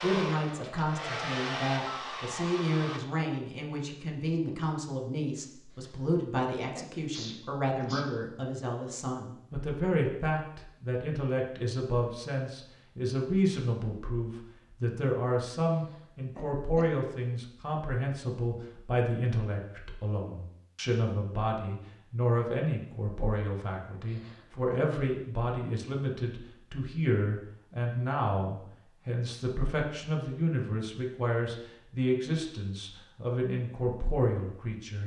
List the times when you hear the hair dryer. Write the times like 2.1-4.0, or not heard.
0.0-3.0.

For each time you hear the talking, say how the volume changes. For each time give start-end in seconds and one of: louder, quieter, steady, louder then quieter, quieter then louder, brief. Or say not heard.
0.0-35.0 steady.